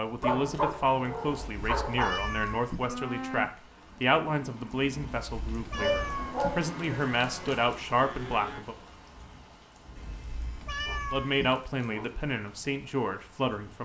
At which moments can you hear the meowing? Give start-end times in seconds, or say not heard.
1.4-2.9, 5.2-6.6, 9.9-11.6.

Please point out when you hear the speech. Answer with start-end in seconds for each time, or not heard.
0.0-8.8, 11.1-13.8.